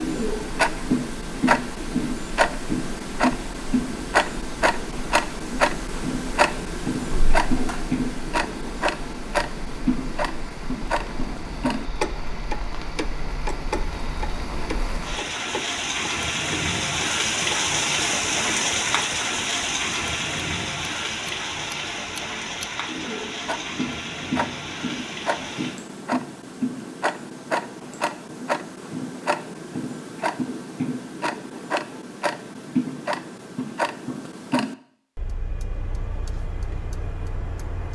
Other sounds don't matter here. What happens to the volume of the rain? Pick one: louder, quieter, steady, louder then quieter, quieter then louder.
louder then quieter.